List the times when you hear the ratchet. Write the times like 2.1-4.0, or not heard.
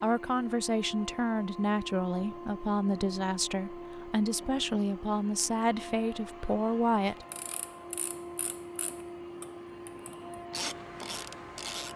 7.3-11.9.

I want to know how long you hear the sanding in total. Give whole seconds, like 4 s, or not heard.
not heard.